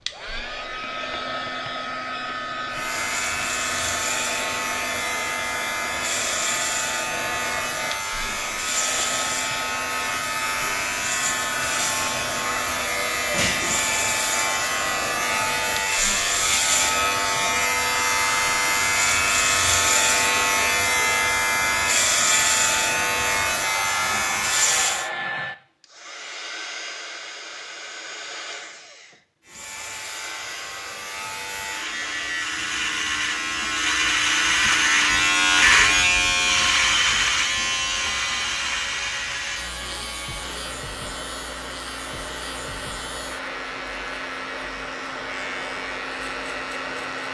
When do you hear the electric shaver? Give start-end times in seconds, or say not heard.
2.7-25.1, 29.4-47.2.